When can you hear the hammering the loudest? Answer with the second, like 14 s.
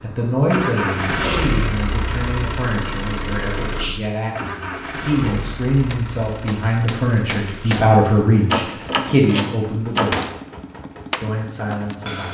10 s.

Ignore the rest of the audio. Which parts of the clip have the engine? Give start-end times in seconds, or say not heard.
0.0-12.3.